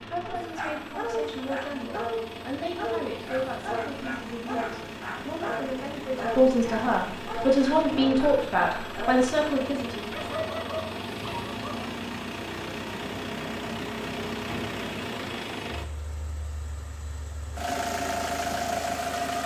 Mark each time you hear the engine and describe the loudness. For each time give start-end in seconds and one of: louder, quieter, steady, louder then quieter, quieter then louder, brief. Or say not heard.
0.0-19.4 louder.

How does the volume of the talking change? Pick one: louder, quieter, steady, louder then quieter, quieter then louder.
louder.